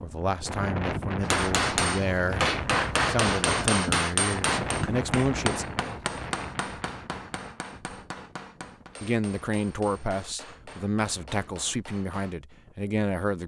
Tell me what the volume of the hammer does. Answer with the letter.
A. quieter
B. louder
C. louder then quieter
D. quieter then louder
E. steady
A.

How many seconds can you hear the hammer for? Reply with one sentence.
The hammer can be heard for 11 seconds in total.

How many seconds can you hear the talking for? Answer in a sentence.
You can hear the talking for 10 seconds altogether.